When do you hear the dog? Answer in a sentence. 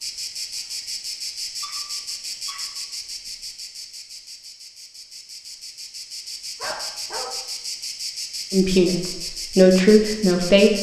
The dog can be heard from 1.6 to 2.8 s and from 6.6 to 7.3 s.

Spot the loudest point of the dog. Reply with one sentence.
The volume of the dog peaks at 7 seconds.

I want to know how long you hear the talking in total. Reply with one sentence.
The talking can be heard for 2 seconds in total.